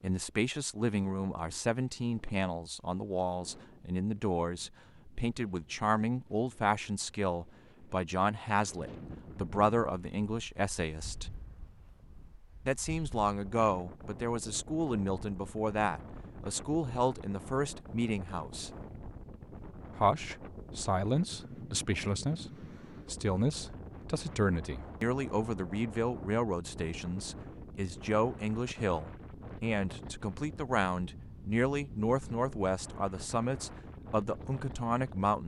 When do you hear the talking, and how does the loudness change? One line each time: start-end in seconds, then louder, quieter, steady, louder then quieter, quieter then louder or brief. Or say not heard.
0.0-11.3 steady
12.7-18.7 steady
19.9-35.4 steady.